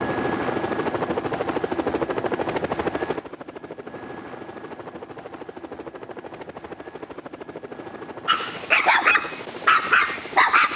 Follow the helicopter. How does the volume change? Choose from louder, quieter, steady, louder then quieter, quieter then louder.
quieter.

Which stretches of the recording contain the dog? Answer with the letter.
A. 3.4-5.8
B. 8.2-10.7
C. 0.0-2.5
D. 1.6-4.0
B.